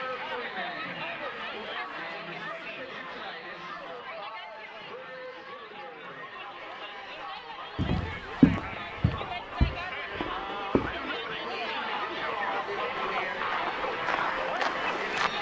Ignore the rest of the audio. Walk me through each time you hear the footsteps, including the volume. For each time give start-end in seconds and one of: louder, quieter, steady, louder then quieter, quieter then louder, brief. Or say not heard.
7.8-15.3 quieter then louder.